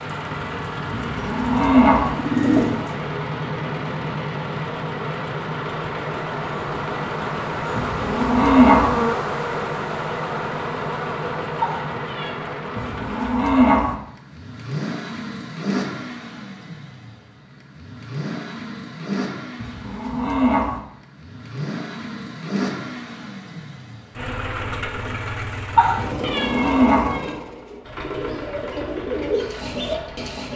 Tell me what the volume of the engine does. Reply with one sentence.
The loudness of the engine stays about the same.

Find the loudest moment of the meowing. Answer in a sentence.
The loudest moment of the meowing is at 26 seconds.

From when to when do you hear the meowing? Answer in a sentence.
You can hear the meowing from 11.6 to 12.3 s and from 25.8 to 27.3 s.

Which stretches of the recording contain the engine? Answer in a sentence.
The engine can be heard from 0.0 to 30.5 s.